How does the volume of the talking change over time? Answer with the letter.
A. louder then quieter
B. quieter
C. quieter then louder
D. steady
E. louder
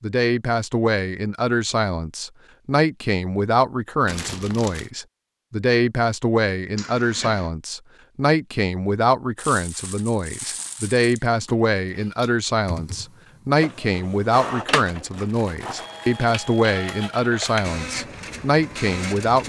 D.